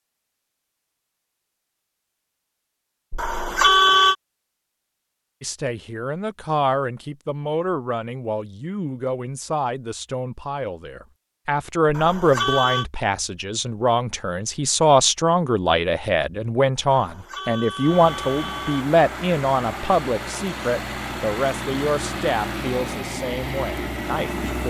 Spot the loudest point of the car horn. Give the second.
4 s.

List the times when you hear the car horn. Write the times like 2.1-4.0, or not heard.
3.1-4.2, 11.8-12.8, 16.9-18.9.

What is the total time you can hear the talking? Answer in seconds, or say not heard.
19 s.